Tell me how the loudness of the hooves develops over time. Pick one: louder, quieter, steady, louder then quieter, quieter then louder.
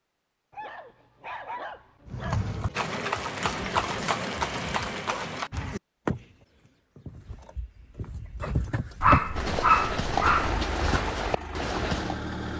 quieter then louder.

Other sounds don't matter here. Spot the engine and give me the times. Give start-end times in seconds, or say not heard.
10.3-12.5.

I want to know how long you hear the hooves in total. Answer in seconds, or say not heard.
10 s.